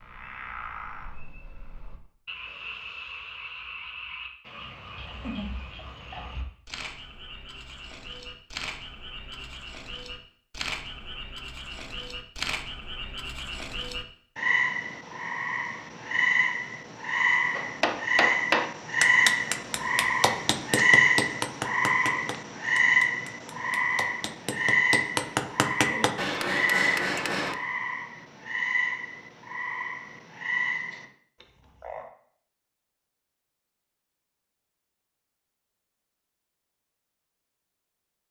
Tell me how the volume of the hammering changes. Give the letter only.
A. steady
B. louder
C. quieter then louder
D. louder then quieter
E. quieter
C.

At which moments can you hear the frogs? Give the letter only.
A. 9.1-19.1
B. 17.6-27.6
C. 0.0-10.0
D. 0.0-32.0
D.